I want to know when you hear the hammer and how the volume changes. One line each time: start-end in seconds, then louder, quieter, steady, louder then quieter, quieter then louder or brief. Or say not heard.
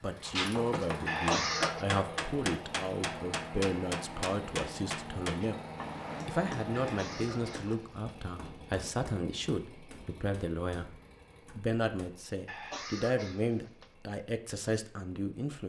0.2-12.1 quieter.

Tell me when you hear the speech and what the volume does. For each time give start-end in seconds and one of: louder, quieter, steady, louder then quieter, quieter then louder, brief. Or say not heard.
0.0-5.6 steady
6.2-15.6 steady.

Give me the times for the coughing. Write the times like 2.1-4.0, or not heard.
1.1-1.9, 6.7-8.2, 12.4-13.9.